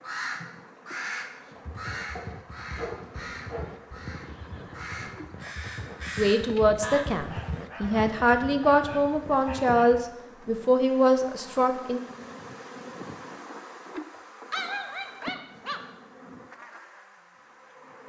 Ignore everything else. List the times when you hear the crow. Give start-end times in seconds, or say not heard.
0.0-7.0.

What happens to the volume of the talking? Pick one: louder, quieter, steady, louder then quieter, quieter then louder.
steady.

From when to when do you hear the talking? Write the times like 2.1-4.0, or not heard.
6.2-12.0.